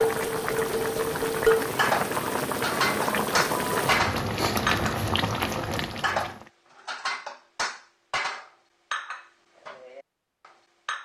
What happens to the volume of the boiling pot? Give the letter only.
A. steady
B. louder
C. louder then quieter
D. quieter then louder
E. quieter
A.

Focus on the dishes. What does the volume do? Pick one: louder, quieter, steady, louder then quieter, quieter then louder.
quieter.